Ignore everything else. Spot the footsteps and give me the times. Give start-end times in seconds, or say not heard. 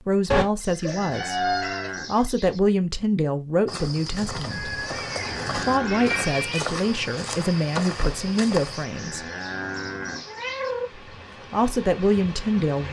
3.6-8.8.